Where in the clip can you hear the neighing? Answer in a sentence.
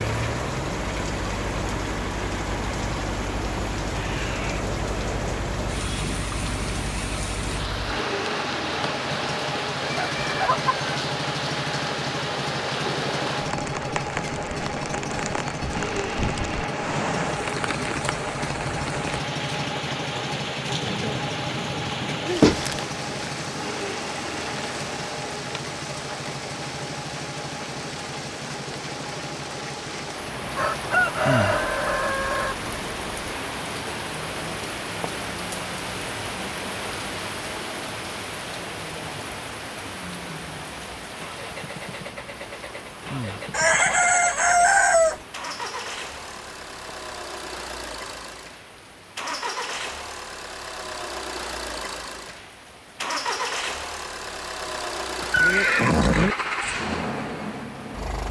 You can hear the neighing from 3.9 to 4.7 s and from 55.2 to 56.4 s.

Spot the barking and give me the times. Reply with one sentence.
The barking can't be heard in this clip.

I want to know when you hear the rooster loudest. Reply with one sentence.
The loudest moment of the rooster is at 45 seconds.